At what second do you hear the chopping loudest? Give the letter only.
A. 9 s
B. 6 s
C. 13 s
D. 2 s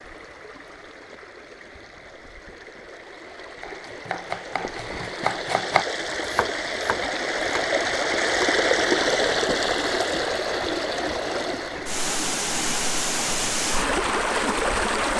B.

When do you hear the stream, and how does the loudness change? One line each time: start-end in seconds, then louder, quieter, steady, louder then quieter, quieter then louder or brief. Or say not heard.
0.0-15.1 louder.